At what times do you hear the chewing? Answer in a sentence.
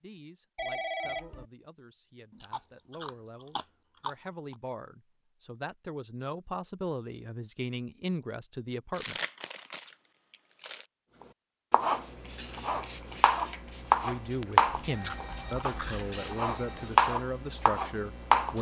You can hear the chewing from 2.3 to 4.5 s, from 8.9 to 10.8 s and from 14.7 to 16.2 s.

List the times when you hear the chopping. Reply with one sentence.
You can hear the chopping from 11.7 to 18.5 s.